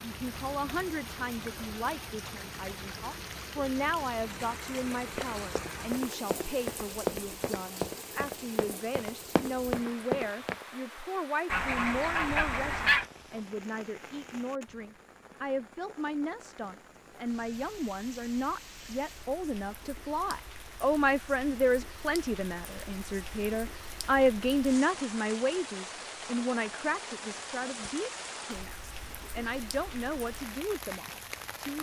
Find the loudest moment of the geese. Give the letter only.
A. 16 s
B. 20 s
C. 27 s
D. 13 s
D.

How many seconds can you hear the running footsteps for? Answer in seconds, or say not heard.
6 s.